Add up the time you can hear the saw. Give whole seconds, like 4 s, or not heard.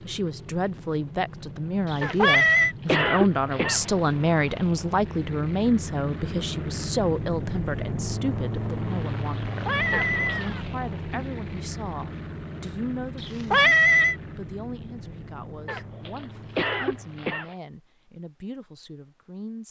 not heard.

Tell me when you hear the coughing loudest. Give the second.
3 s.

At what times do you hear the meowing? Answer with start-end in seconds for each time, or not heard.
1.9-2.8, 9.4-11.2, 13.2-14.2.